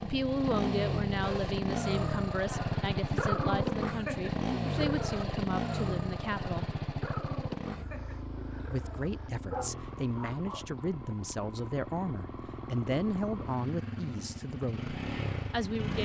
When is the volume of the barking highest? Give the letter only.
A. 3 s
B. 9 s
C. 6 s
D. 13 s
A.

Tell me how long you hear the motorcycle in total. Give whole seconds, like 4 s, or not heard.
16 s.